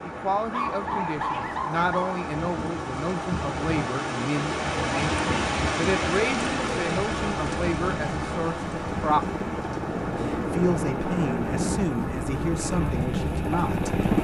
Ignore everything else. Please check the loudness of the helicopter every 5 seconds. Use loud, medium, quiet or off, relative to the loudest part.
off, medium, loud.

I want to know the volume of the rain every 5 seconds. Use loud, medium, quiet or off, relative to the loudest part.
loud, loud, medium.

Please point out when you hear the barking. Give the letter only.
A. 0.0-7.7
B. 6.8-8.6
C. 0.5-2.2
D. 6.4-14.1
C.